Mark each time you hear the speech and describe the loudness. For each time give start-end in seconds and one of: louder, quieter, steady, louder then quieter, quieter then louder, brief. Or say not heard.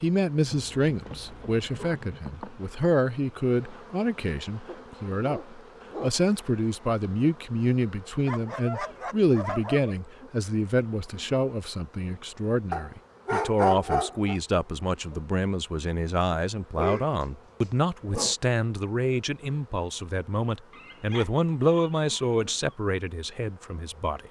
0.0-24.2 steady.